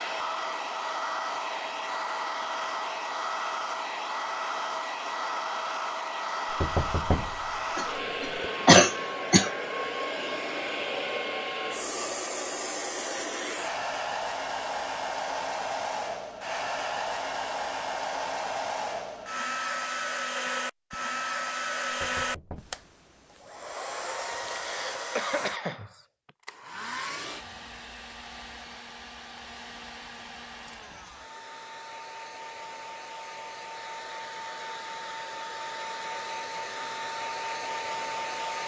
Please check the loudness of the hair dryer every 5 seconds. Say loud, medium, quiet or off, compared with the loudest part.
loud, loud, loud, loud, loud, medium, medium, loud.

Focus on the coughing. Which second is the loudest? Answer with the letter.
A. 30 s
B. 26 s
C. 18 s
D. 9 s
D.